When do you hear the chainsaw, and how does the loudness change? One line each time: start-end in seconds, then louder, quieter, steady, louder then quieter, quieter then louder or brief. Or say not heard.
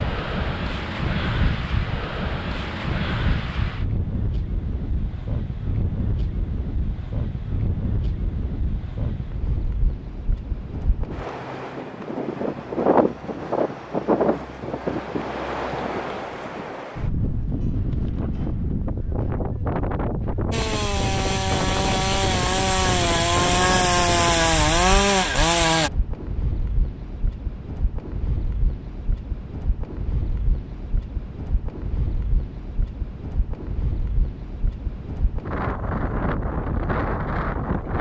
20.5-25.9 louder.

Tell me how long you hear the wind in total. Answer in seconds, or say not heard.
38 s.